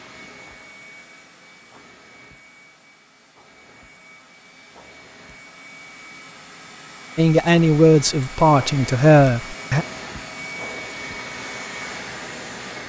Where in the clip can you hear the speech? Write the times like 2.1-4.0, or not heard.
7.2-9.8.